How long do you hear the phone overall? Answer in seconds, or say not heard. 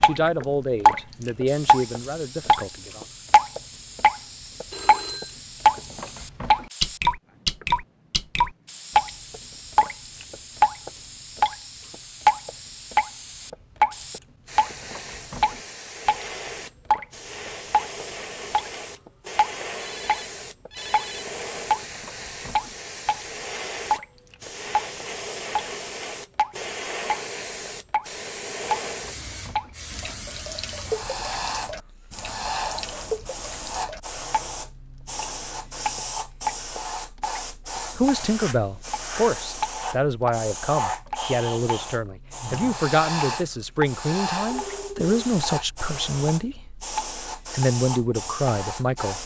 3 s.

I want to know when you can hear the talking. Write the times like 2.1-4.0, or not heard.
0.0-3.0, 38.0-46.8, 47.5-49.2.